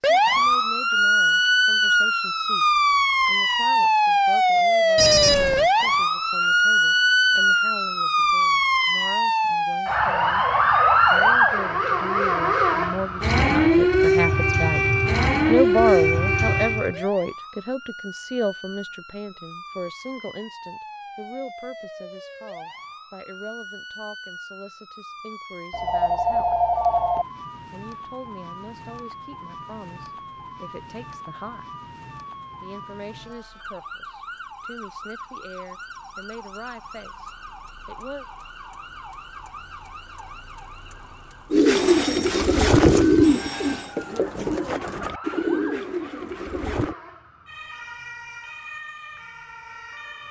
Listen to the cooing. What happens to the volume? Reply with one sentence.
The loudness of the cooing goes down.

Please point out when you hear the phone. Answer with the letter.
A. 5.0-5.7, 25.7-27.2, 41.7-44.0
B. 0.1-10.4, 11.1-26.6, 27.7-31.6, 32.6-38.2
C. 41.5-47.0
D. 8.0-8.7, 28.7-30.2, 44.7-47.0
A.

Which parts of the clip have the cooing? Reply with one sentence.
The cooing can be heard from 41.5 to 47.0 s.